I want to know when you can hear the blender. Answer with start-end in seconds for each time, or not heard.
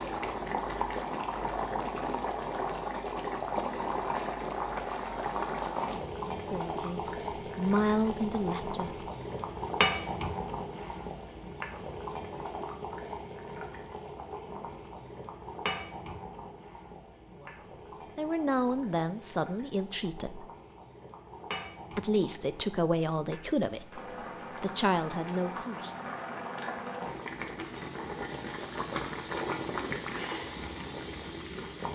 not heard.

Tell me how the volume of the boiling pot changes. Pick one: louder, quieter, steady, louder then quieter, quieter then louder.
quieter then louder.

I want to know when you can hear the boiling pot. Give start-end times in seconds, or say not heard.
0.0-31.8.